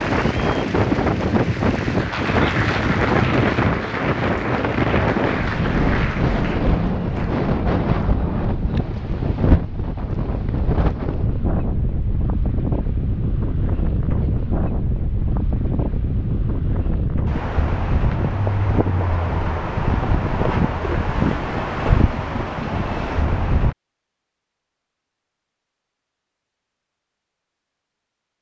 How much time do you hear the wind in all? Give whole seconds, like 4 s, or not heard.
24 s.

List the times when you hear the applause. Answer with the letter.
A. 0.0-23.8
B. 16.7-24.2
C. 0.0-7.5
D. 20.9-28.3
C.